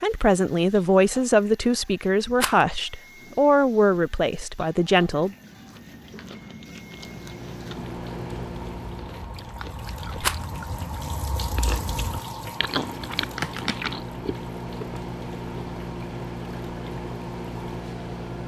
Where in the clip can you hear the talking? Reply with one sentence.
You can hear the talking from 0.0 to 5.3 s.